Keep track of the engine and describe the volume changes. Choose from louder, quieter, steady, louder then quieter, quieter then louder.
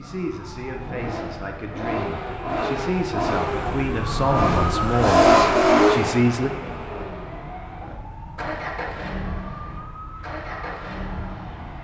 louder then quieter.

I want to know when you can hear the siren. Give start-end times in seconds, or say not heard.
0.0-11.7.